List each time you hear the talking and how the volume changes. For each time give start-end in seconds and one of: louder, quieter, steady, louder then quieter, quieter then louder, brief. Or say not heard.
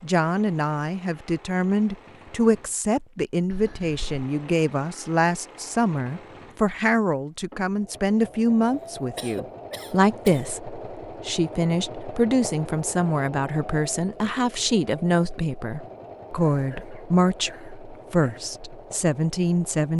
0.0-19.9 steady.